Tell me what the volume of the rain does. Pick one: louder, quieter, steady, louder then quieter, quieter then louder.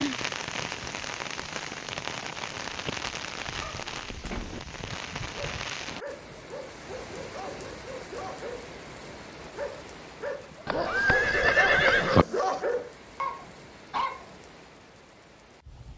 quieter.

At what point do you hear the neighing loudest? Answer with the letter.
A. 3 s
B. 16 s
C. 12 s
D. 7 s
C.